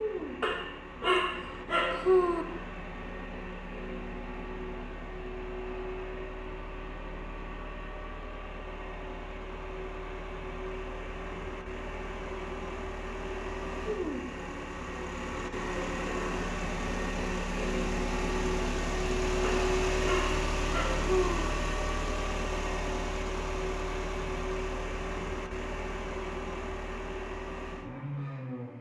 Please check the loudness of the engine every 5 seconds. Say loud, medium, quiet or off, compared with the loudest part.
medium, medium, medium, loud, loud, medium.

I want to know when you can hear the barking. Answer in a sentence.
You can hear the barking from 0.4 to 2.5 s and from 19.4 to 21.4 s.